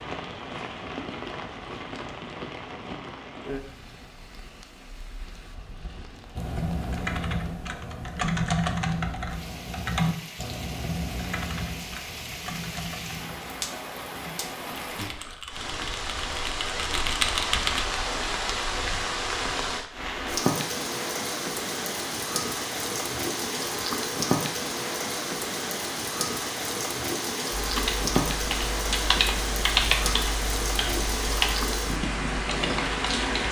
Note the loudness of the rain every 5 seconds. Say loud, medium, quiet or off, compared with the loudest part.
medium, quiet, medium, loud, loud, loud, loud.